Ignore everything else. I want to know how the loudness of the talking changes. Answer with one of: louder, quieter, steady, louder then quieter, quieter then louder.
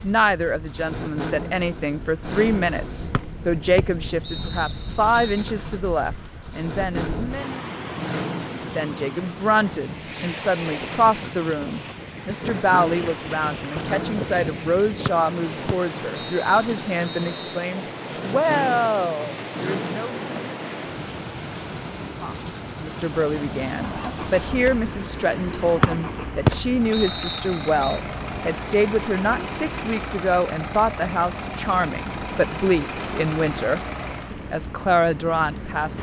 steady.